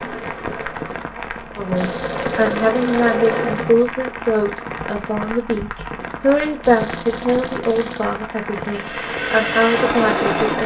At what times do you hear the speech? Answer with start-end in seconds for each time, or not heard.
1.6-10.6.